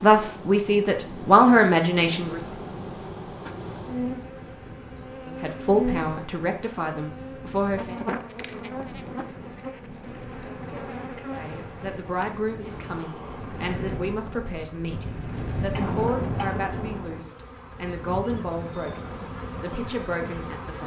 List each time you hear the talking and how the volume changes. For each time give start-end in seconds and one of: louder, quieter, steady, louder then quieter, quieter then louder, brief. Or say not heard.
0.0-2.4 brief
5.2-8.0 brief
11.3-20.8 steady.